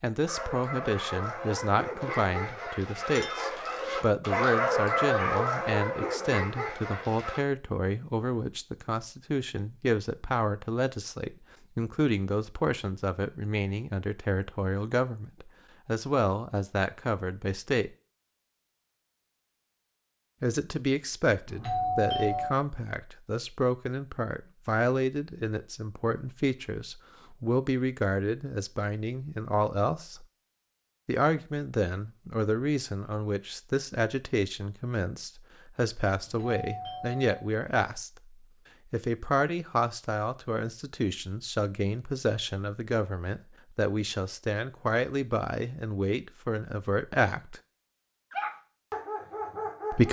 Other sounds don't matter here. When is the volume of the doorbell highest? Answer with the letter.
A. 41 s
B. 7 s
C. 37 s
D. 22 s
D.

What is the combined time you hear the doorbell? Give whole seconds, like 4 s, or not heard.
2 s.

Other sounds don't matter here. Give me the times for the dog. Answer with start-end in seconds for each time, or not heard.
0.2-7.4, 48.3-50.0.